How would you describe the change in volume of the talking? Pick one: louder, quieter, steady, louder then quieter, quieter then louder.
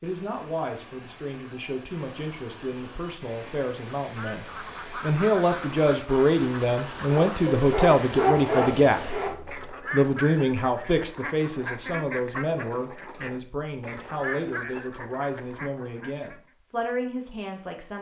louder then quieter.